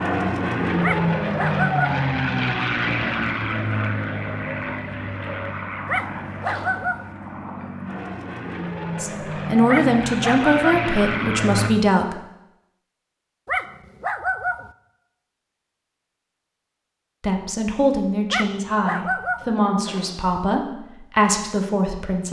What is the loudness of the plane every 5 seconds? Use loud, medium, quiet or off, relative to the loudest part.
loud, medium, loud, off, off.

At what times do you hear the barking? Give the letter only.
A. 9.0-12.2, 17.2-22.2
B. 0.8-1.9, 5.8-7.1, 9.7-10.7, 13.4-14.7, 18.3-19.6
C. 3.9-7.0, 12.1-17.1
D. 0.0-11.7
B.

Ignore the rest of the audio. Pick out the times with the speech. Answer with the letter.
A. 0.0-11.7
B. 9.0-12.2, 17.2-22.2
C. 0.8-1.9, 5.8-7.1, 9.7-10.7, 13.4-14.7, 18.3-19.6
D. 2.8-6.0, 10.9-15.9
B.